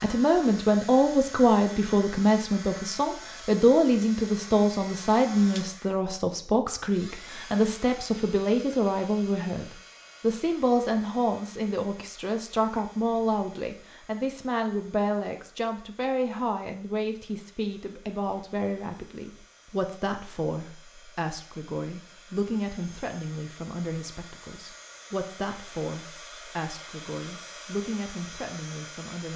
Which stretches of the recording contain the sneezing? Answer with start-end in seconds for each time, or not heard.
not heard.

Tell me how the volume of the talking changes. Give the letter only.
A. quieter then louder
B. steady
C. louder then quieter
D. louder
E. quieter
E.